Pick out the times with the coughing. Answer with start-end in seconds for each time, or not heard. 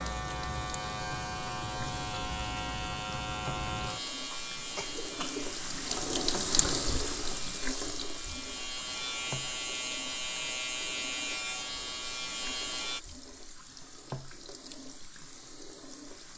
4.3-5.5.